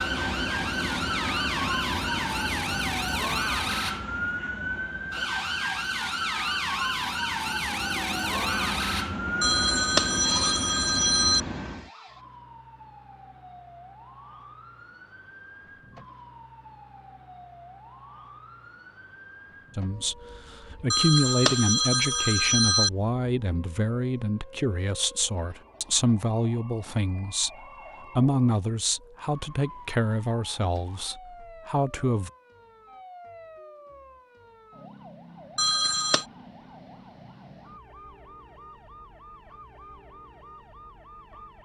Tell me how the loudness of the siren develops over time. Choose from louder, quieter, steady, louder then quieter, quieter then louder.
quieter.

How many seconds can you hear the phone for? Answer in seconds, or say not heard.
5 s.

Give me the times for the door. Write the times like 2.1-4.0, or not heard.
not heard.